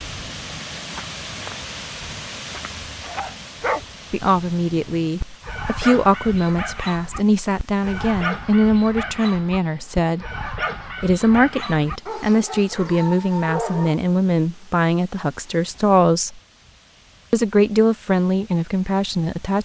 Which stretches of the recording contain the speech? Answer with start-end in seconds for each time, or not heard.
4.1-10.3, 11.0-16.4, 17.3-19.6.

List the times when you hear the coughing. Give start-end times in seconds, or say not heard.
not heard.